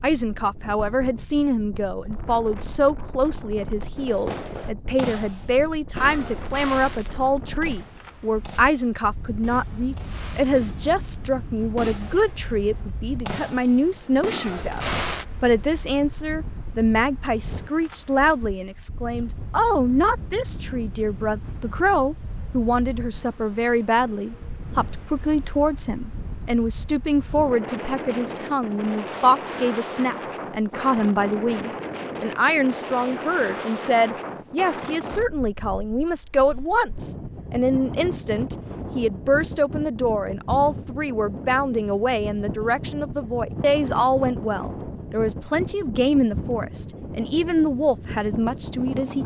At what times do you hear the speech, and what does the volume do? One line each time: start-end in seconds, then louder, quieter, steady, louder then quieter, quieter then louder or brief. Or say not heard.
0.0-49.2 steady.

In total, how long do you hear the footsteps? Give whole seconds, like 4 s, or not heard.
not heard.